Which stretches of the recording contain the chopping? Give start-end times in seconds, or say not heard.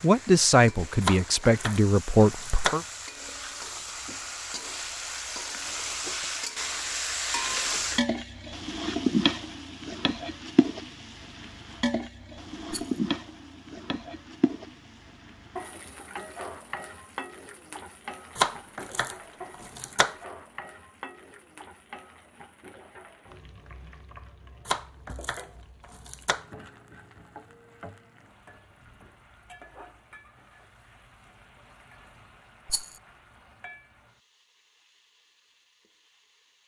1.0-2.8, 18.4-20.1, 24.6-26.4.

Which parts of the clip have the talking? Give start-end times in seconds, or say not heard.
0.0-2.8.